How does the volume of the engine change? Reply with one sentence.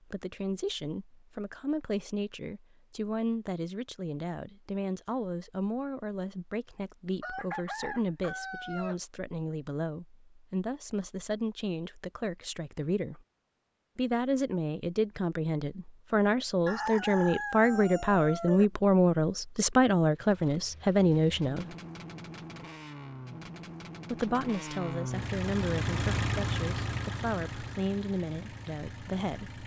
The loudness of the engine goes up, then down.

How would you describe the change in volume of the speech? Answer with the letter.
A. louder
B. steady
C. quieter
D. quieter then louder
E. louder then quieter
E.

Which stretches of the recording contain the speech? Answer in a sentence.
The speech can be heard from 0.1 to 13.2 s, from 13.9 to 21.8 s and from 24.1 to 29.6 s.